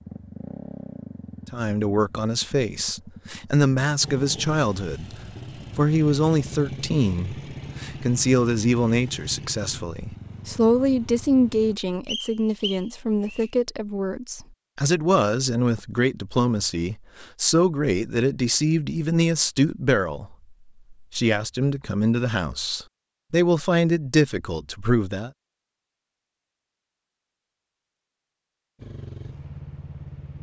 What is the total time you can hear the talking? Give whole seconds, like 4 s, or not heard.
23 s.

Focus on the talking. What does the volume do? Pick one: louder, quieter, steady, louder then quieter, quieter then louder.
steady.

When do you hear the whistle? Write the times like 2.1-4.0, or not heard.
12.1-13.5.